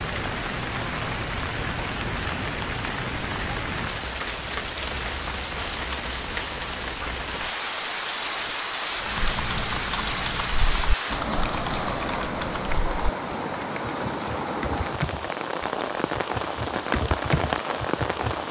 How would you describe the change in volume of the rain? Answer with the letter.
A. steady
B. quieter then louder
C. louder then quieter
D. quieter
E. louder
A.